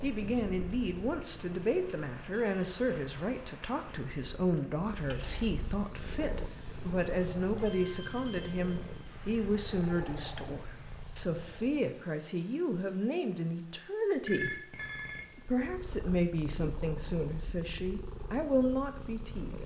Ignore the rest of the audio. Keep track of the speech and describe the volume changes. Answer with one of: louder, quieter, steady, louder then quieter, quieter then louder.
steady.